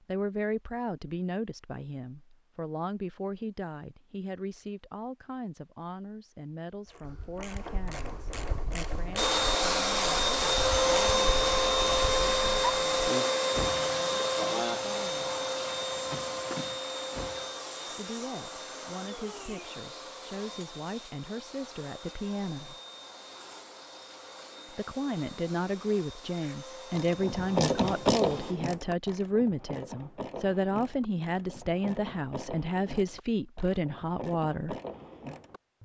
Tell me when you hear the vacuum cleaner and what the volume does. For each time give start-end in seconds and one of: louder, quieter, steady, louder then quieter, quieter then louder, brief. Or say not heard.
9.2-28.6 quieter.